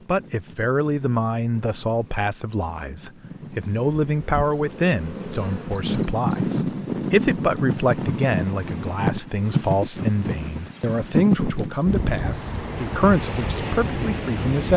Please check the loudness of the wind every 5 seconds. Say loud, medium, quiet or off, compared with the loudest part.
quiet, loud, loud.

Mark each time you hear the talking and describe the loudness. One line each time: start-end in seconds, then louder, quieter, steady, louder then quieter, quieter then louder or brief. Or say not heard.
0.1-14.7 steady.